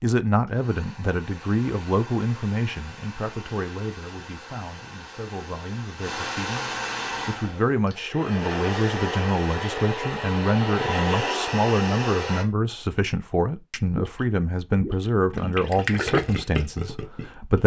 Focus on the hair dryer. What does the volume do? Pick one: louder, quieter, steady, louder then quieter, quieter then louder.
louder.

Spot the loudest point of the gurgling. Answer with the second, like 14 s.
16 s.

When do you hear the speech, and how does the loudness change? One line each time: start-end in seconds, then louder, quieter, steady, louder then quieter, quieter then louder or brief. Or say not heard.
0.0-17.6 quieter then louder.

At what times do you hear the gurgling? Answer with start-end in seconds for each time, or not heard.
13.9-17.6.